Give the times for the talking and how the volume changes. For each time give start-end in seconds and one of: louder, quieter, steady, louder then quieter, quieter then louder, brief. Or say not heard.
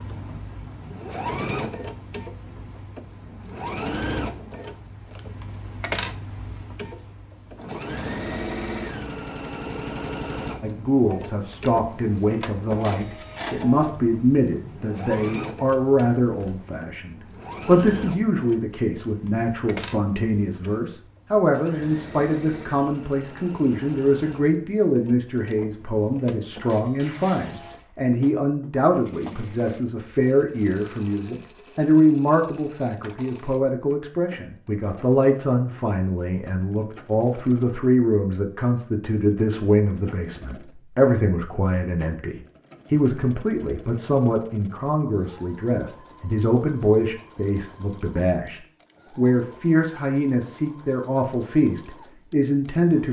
10.6-53.0 steady.